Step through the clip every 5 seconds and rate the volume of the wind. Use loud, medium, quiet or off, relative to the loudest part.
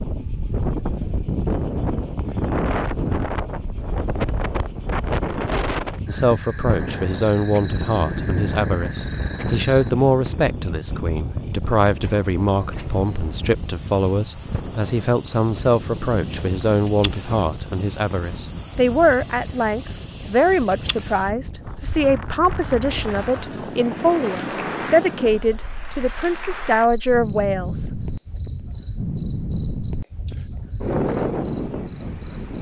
loud, loud, medium, medium, medium, medium, loud.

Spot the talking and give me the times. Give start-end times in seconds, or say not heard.
6.0-27.9.